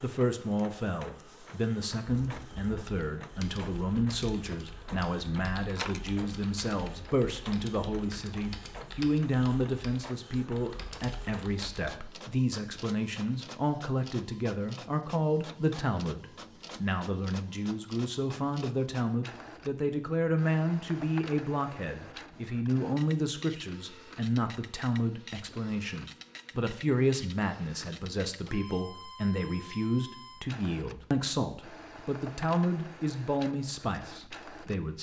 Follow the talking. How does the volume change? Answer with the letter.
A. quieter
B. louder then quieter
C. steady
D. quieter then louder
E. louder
C.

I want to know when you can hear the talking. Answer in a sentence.
The talking can be heard from 0.0 to 34.9 s.